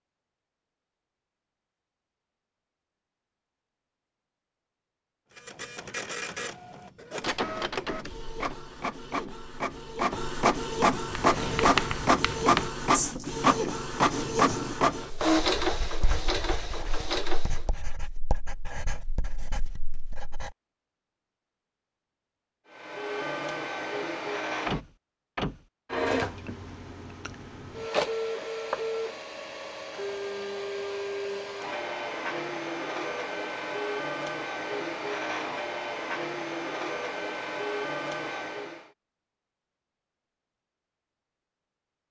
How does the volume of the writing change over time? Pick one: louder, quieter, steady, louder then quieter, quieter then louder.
quieter.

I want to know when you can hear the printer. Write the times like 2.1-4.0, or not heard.
5.3-17.7, 22.7-38.9.